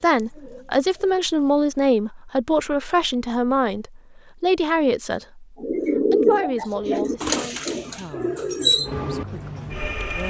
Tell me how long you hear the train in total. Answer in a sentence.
The train can be heard for 4 seconds in total.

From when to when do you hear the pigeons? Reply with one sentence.
The pigeons can be heard from 0.0 to 1.8 s and from 5.5 to 10.2 s.